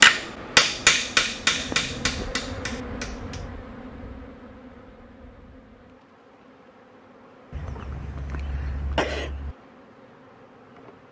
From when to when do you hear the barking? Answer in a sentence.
You can't hear the barking here.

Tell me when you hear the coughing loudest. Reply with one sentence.
The loudest moment of the coughing is at 9 seconds.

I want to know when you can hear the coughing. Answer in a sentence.
The coughing can be heard from 1.5 to 2.3 s and from 7.5 to 9.6 s.